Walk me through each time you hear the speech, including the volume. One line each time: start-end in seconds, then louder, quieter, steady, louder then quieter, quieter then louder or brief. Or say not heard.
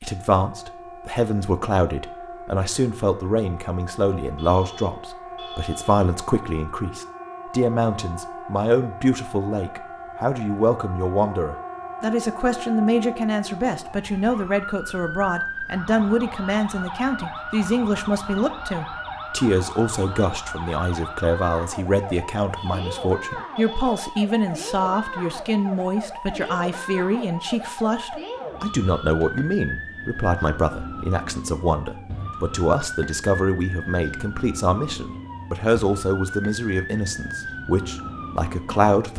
0.0-39.1 steady.